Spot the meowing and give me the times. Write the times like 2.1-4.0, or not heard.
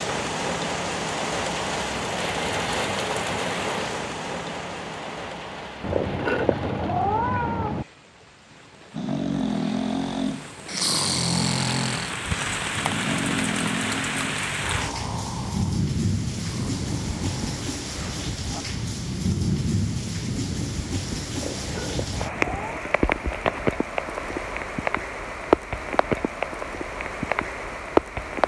5.8-7.8, 21.3-22.8.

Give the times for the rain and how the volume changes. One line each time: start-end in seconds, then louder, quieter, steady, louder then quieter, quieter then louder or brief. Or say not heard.
0.0-28.4 quieter then louder.